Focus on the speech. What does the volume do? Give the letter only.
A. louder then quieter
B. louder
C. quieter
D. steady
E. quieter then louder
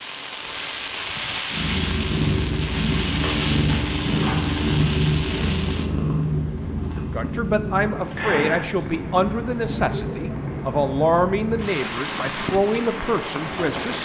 D.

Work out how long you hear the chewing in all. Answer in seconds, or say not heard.
2 s.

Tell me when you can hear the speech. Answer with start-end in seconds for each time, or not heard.
7.0-14.0.